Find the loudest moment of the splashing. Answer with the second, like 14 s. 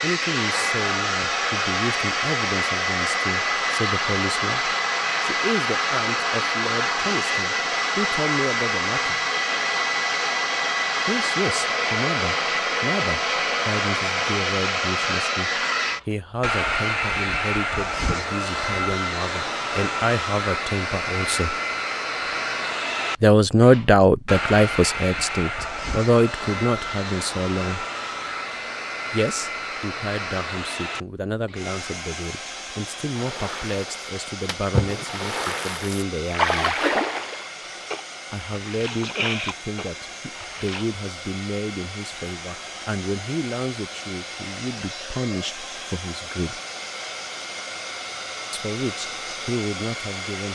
37 s.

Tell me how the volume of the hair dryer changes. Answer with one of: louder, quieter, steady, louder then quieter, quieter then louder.
quieter.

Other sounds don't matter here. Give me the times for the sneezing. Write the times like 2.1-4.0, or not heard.
not heard.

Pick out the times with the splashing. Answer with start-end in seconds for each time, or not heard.
33.1-40.9.